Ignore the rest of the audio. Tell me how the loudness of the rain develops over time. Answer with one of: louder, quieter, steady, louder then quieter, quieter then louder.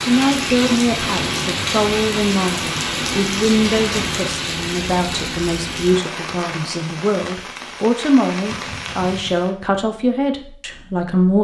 quieter.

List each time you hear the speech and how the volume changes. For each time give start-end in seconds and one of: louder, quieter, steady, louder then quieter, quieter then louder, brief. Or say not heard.
0.0-11.3 steady.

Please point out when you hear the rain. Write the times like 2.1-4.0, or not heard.
0.0-9.6.